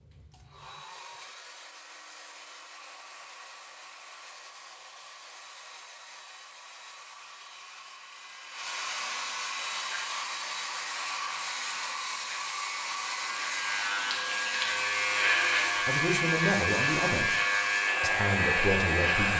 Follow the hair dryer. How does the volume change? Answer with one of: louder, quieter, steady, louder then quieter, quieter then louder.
louder.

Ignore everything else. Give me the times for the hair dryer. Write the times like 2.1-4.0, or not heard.
0.0-19.3.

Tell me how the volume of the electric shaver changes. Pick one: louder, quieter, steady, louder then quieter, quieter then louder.
louder.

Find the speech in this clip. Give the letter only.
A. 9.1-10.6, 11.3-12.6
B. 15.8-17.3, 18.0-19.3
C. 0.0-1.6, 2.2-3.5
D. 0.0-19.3
B.